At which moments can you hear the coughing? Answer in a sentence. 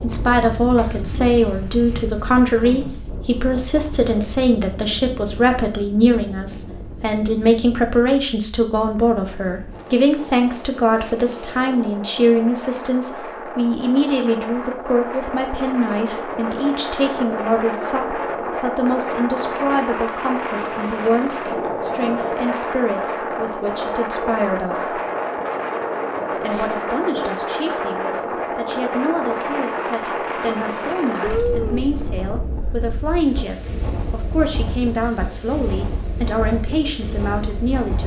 The coughing can be heard from 0.2 to 1.2 s and from 31.2 to 31.9 s.